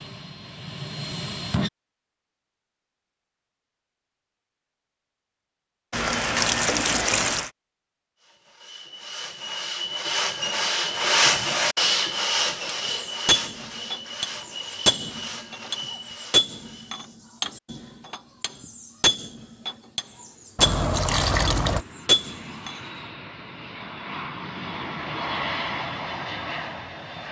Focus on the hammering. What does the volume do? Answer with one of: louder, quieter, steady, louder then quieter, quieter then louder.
quieter then louder.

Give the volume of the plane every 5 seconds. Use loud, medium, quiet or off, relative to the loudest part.
loud, off, off, off, medium, loud.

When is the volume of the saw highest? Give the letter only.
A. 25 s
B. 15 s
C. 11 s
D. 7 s
C.